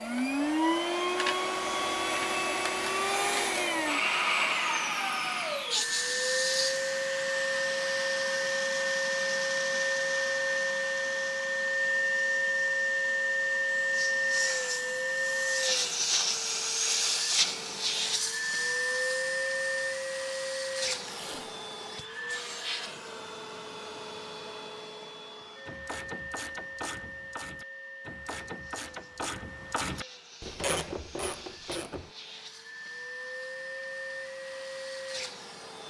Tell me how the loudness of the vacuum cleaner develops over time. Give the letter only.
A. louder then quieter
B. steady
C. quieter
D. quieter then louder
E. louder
C.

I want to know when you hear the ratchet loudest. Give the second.
31 s.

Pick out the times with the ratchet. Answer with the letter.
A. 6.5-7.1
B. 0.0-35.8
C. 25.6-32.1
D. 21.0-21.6
C.